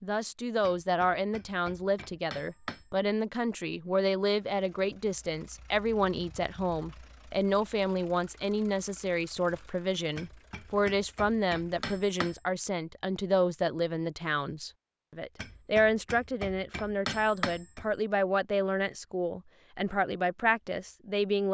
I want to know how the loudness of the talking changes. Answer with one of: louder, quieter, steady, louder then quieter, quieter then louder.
steady.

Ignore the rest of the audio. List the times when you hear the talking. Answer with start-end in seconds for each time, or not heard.
0.0-21.4.